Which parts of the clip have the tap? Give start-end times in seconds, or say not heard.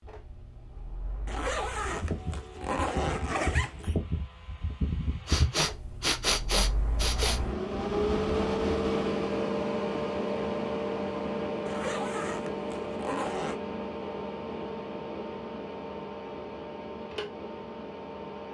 not heard.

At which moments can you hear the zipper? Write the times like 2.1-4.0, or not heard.
1.2-4.0, 11.7-13.6.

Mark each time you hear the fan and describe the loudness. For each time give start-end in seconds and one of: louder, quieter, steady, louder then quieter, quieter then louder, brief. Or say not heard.
0.0-18.4 louder then quieter.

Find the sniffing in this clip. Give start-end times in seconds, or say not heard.
5.2-7.4.